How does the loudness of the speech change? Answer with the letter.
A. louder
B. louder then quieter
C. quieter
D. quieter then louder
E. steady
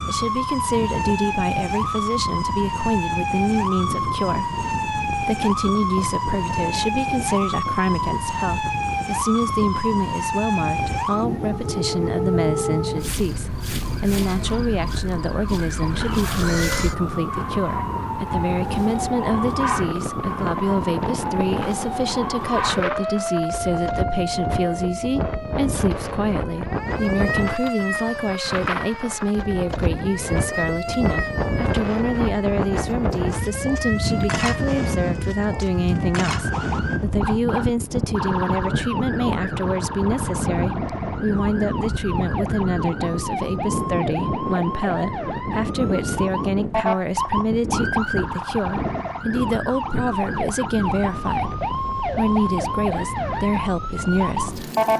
E.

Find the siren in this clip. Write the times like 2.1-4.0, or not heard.
0.0-54.9.